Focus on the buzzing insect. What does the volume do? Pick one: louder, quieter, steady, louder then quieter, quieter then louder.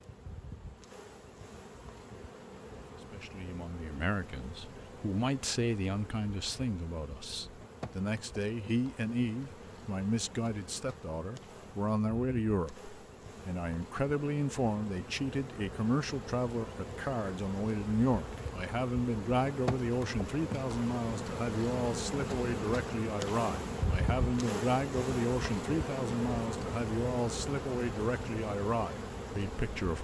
louder.